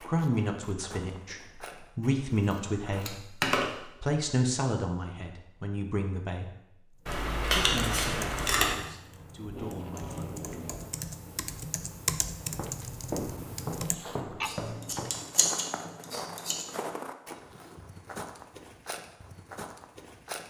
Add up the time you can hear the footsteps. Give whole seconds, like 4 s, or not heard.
11 s.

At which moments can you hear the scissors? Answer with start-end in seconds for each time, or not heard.
2.0-3.6, 7.0-8.8, 14.4-16.6.